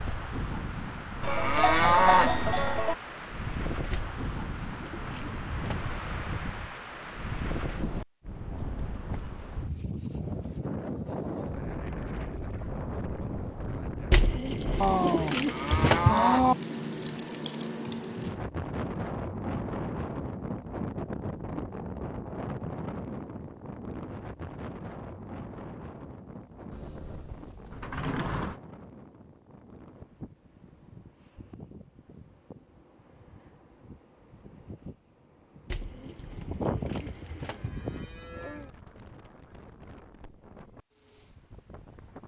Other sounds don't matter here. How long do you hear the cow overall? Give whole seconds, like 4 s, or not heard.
8 s.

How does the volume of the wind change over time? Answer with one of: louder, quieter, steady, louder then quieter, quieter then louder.
quieter.